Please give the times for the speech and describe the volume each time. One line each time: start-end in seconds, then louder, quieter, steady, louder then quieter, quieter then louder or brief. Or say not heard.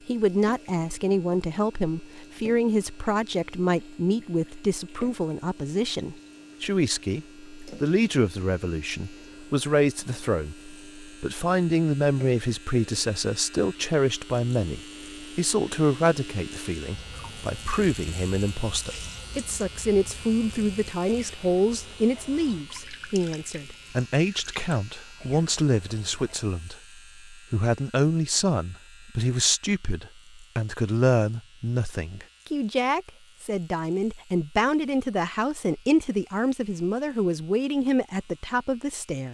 0.1-39.2 steady.